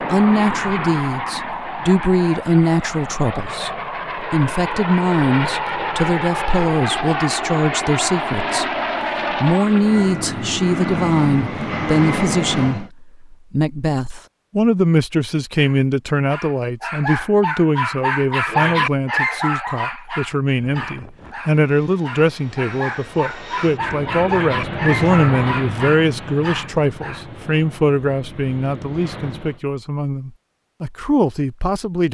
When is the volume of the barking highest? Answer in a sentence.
The loudest moment of the barking is at 19 seconds.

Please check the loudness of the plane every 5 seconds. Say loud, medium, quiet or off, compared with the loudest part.
loud, loud, loud, off, medium, medium, off.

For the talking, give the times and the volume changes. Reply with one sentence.
The talking can be heard from 0.1 to 32.0 s, at a steady volume.